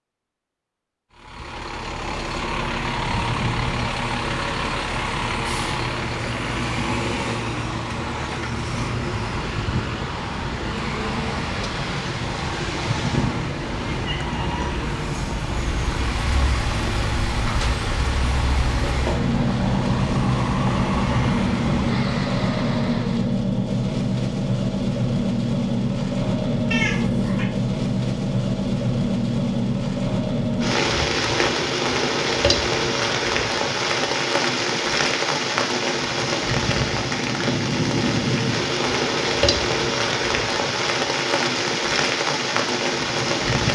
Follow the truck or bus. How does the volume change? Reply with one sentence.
The loudness of the truck or bus stays about the same.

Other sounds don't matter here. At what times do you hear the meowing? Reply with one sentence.
You can hear the meowing from 12.9 to 14.7 s and from 26.7 to 27.5 s.